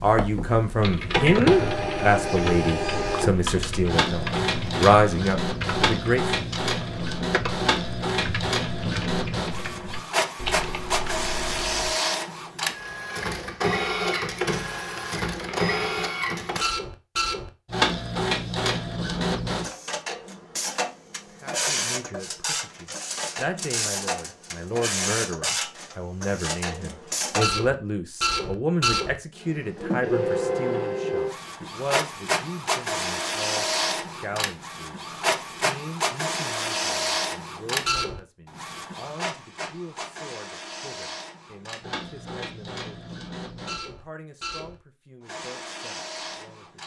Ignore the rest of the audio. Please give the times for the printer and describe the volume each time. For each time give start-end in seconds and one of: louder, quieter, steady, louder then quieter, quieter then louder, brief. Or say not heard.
0.0-46.8 quieter.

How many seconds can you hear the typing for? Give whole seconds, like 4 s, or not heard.
11 s.